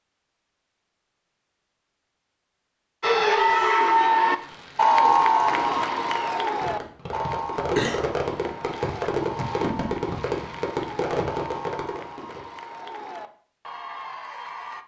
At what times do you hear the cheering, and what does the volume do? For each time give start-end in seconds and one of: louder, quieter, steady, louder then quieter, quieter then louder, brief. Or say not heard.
3.0-14.8 quieter.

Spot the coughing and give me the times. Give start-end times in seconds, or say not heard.
7.5-8.2.